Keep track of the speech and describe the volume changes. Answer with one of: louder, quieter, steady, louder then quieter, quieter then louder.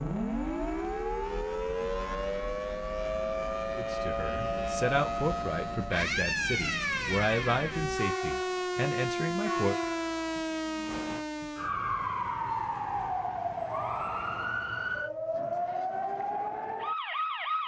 steady.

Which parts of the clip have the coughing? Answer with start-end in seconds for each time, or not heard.
not heard.